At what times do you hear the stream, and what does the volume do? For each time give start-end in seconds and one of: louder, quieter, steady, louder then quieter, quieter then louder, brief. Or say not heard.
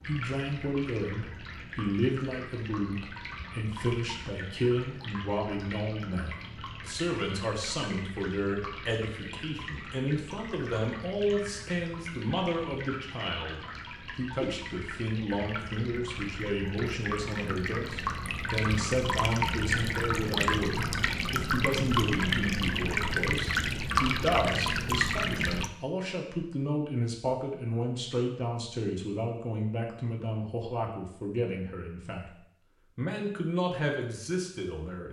0.0-25.7 louder.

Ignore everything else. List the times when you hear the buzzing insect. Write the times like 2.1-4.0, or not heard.
not heard.